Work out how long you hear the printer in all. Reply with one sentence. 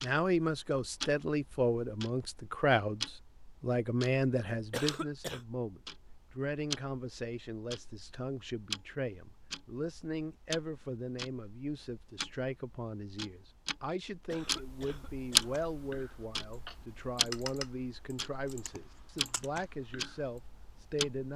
The printer can't be heard in this clip.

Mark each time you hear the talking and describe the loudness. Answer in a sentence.
You can hear the talking from 0.0 to 21.3 s, getting quieter.